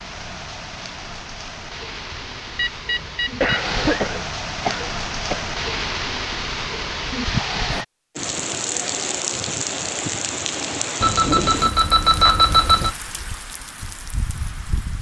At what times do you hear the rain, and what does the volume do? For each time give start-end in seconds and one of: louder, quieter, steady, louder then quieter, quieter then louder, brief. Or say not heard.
0.0-14.9 louder then quieter.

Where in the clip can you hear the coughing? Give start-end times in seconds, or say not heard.
3.0-5.4.